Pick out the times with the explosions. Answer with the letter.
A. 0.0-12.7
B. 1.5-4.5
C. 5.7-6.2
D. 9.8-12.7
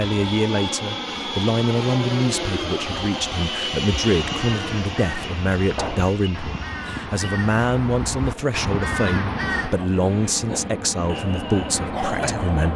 C.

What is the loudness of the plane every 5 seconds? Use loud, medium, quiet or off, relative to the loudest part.
loud, medium, loud.